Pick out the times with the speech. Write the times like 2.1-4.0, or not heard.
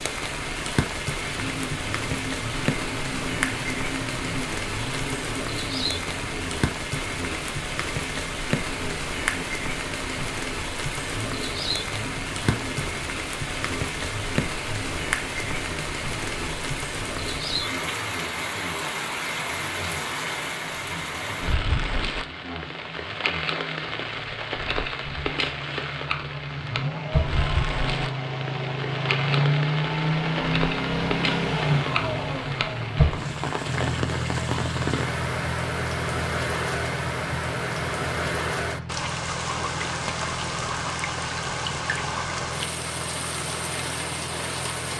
not heard.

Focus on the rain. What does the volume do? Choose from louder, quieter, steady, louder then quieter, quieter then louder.
steady.